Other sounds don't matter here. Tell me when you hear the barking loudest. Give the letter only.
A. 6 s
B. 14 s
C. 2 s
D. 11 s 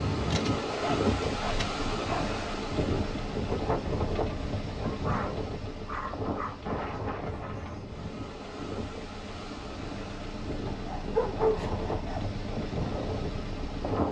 D.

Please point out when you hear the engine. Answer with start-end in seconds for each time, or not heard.
0.1-14.0.